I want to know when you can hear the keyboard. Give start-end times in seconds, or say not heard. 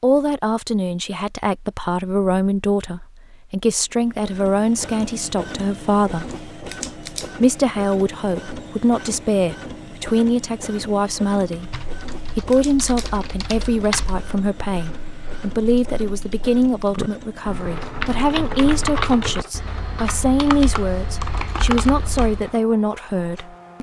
11.5-22.5.